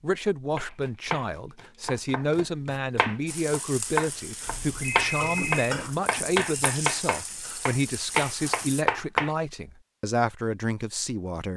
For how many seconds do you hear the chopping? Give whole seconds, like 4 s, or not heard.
9 s.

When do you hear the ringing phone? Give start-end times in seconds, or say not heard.
4.5-6.0.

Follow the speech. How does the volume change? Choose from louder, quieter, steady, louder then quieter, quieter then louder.
steady.